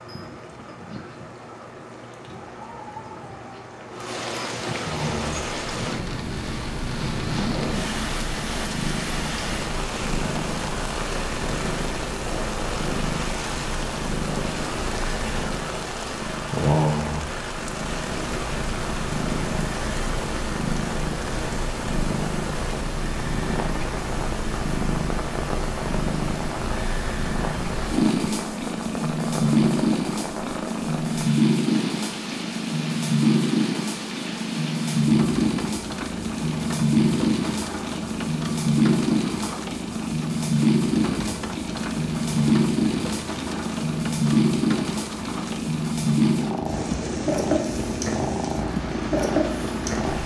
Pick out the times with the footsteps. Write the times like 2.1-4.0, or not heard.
not heard.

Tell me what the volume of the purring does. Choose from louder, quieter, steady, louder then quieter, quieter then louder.
louder.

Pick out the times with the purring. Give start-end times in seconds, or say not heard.
4.8-50.2.